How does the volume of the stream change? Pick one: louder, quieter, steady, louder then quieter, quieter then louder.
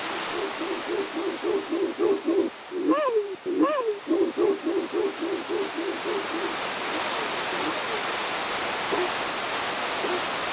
quieter then louder.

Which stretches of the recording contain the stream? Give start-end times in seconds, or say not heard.
0.0-10.4.